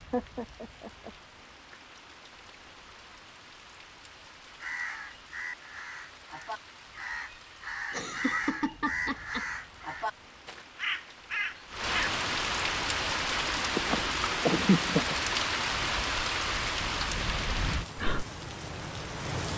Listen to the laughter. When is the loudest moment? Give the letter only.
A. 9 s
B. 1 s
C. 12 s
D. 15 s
D.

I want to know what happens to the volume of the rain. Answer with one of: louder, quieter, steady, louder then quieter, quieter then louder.
louder.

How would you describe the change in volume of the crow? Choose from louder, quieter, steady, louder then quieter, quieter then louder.
louder.